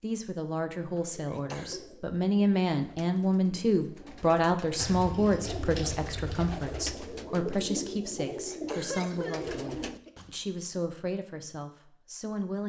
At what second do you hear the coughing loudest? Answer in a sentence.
The loudest moment of the coughing is at 9 seconds.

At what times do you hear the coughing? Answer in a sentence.
The coughing can be heard from 1.1 to 1.8 s and from 8.3 to 10.1 s.